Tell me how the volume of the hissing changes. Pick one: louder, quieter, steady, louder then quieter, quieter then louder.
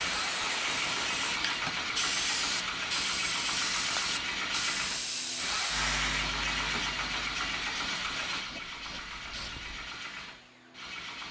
quieter.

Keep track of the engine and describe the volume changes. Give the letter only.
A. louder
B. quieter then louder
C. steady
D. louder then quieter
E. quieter
E.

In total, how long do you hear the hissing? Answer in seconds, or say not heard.
10 s.